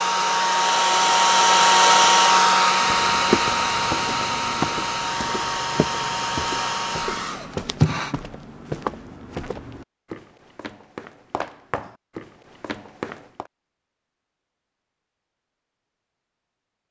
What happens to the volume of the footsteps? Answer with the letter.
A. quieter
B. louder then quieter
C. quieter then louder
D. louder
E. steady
A.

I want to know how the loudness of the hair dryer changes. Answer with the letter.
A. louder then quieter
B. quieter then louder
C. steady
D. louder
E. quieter
E.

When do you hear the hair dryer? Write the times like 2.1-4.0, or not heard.
0.0-8.2.